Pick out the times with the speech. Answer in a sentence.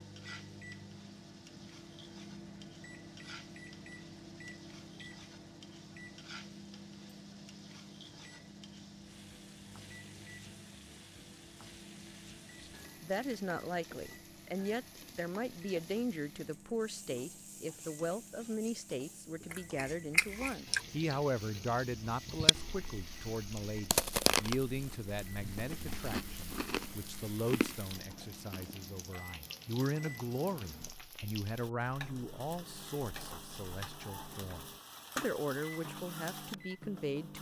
The speech can be heard from 12.6 to 37.3 s.